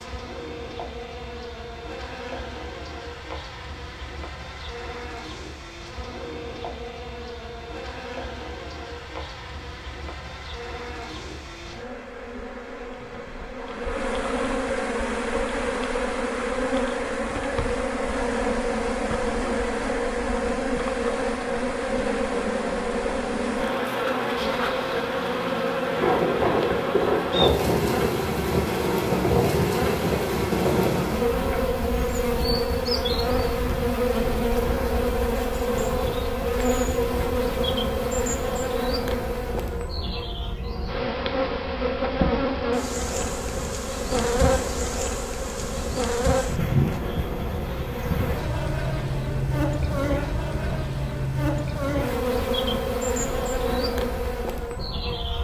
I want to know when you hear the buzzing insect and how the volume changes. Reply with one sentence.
The buzzing insect can be heard from 0.0 to 55.3 s, getting louder.